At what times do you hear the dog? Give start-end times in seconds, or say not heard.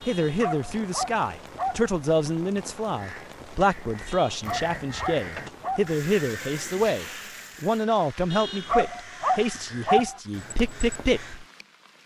0.0-1.9, 4.0-6.0, 8.3-10.2.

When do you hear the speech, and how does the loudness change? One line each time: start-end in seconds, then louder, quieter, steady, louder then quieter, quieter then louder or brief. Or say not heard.
0.0-11.4 steady.